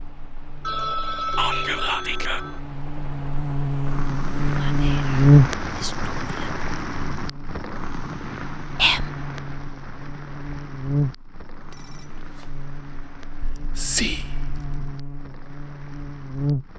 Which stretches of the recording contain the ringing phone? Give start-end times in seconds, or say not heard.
0.6-2.6, 11.7-12.6.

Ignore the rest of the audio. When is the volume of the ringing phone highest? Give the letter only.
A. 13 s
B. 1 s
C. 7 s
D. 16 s
B.